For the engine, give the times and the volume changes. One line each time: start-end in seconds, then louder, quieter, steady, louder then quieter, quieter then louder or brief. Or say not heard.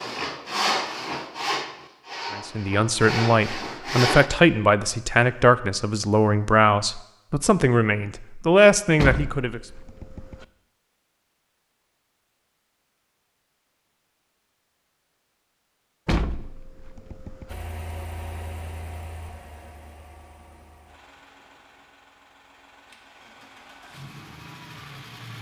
17.4-25.3 quieter then louder.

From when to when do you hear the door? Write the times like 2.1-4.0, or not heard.
8.9-10.4, 16.1-17.6.